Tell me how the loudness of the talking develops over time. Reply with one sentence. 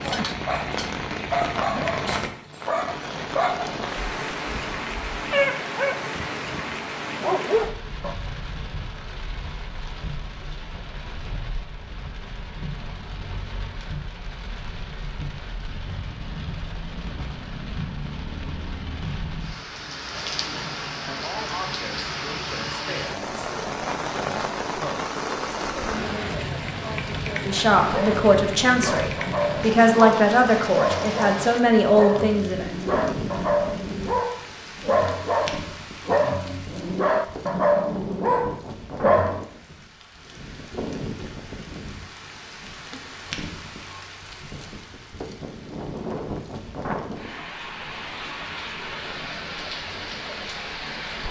The volume of the talking goes up.